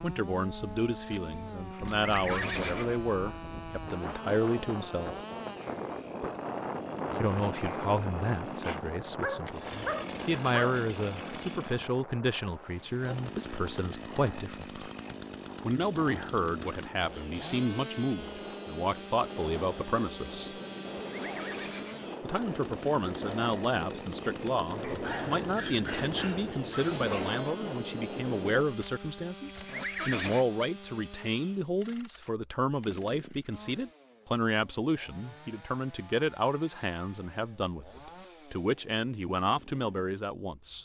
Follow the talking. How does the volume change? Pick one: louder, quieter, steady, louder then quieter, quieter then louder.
steady.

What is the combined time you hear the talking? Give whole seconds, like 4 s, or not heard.
36 s.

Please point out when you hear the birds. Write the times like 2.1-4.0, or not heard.
not heard.